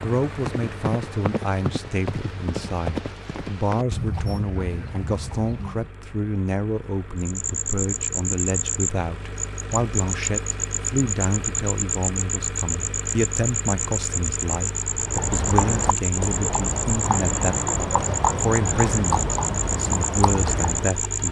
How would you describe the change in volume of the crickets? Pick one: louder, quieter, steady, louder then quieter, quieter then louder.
steady.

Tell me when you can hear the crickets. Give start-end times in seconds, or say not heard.
7.2-21.2.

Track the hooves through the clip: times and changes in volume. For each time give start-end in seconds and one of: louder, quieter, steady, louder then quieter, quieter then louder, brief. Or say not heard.
0.0-5.9 quieter
14.9-21.1 steady.